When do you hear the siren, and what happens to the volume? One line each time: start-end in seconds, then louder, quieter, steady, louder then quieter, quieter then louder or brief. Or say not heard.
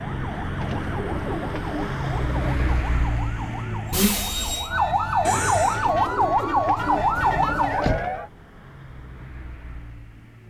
0.0-8.3 louder.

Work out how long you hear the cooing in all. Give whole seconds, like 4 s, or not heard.
5 s.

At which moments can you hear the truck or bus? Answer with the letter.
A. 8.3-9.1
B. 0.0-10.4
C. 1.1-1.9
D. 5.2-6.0
B.